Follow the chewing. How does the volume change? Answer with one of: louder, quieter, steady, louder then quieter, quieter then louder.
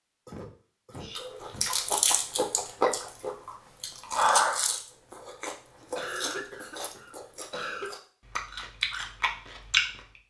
quieter then louder.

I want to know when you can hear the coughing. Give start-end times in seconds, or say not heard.
0.2-1.6, 6.0-8.0.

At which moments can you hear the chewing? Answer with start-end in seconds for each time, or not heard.
1.1-10.0.